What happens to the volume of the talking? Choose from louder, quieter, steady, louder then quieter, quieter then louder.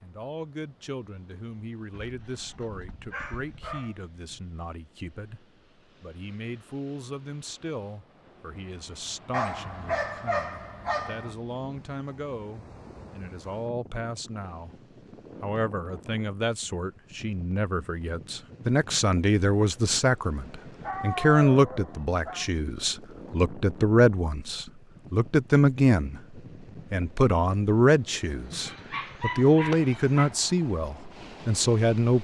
louder.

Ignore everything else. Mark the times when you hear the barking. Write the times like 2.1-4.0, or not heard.
1.9-4.4, 9.3-11.3, 20.8-22.5, 28.5-30.3.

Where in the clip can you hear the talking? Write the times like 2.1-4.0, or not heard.
0.0-14.8, 15.4-32.2.